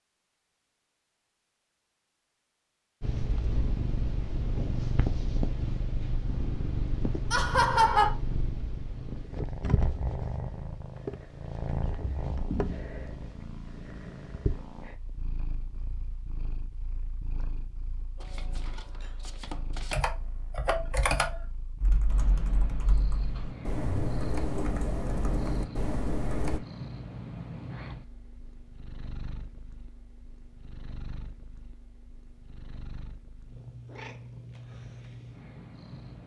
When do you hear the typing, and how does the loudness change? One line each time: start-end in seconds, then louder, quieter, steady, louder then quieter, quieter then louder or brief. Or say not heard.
19.9-26.6 quieter then louder.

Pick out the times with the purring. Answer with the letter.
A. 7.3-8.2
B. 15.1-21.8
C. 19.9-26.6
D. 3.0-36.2
D.